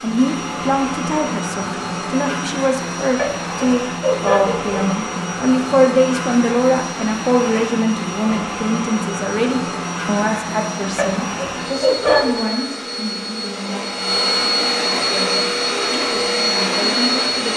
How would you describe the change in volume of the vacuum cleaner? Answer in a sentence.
The loudness of the vacuum cleaner goes up.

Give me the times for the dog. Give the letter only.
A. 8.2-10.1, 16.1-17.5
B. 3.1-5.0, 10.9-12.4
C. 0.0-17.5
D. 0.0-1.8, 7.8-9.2
B.